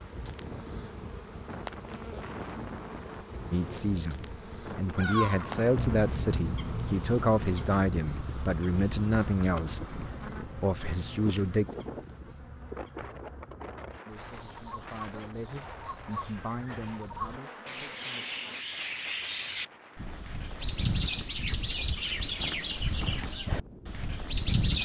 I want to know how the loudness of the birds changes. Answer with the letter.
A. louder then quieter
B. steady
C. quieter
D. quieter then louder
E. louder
D.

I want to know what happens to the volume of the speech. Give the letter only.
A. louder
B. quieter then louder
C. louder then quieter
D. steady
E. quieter
E.